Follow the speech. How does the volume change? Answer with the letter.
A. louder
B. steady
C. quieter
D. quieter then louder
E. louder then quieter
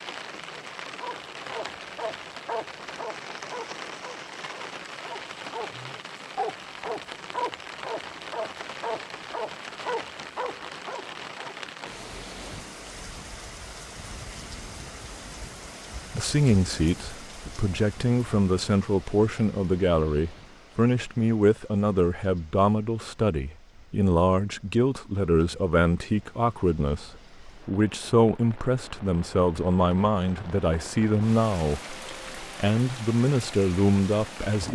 B.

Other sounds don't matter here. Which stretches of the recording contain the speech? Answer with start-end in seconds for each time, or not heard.
16.1-34.6.